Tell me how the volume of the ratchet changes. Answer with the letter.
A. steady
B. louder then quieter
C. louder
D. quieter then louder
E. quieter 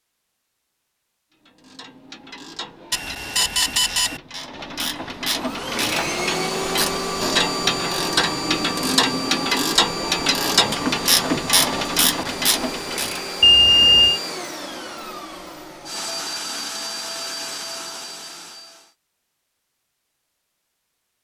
C.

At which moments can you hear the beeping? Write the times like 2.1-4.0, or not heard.
2.9-4.2, 13.4-14.2.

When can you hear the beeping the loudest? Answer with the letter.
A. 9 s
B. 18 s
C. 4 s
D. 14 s
D.